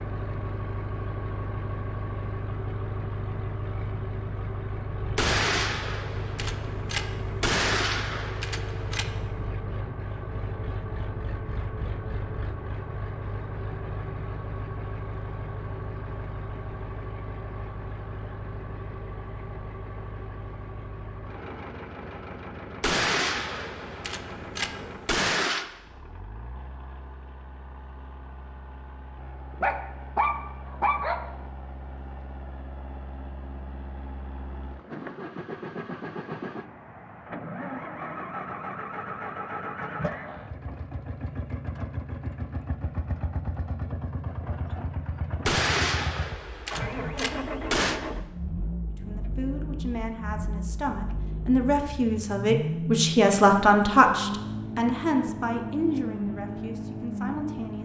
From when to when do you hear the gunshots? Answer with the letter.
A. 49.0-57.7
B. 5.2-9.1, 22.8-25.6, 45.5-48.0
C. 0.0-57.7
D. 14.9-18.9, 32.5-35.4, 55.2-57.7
B.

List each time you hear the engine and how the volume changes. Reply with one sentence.
You can hear the engine from 0.0 to 57.7 s, getting quieter then louder.